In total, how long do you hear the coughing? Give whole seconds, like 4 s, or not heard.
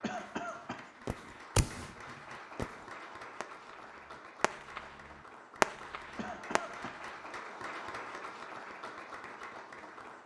2 s.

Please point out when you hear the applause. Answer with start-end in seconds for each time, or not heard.
0.0-10.2.